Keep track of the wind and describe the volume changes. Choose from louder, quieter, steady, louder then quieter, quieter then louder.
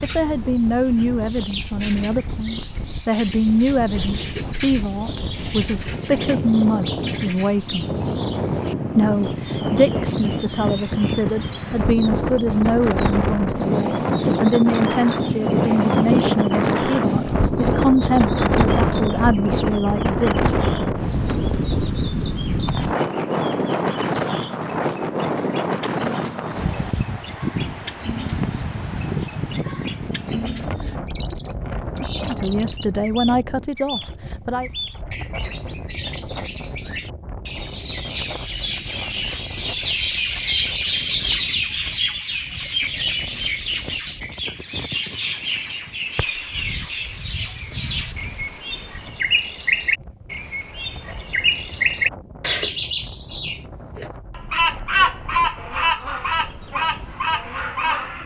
louder then quieter.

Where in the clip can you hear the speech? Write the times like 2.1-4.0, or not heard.
0.0-7.8, 8.9-20.6, 32.2-34.7.